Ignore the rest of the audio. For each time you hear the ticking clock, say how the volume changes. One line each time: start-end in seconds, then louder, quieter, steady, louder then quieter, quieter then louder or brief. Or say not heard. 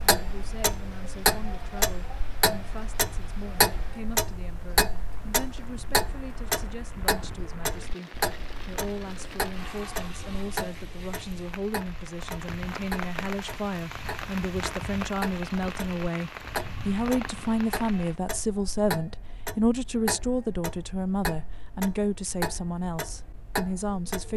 0.0-24.3 quieter.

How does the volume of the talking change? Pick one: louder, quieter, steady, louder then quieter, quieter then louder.
louder.